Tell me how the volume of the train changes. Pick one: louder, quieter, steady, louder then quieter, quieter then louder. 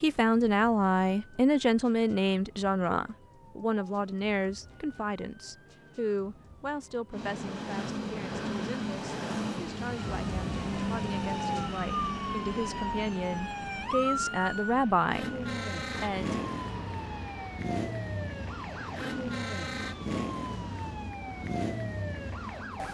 quieter.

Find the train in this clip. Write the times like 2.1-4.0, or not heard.
7.1-22.8.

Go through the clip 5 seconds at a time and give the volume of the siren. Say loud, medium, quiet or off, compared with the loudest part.
quiet, quiet, loud, loud, loud.